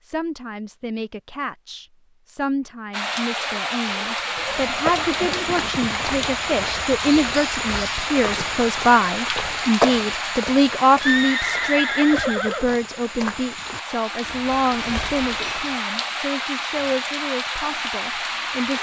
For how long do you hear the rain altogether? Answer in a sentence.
You can hear the rain for 16 seconds altogether.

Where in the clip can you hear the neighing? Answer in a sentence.
You can hear the neighing from 4.2 to 6.2 s and from 11.0 to 12.7 s.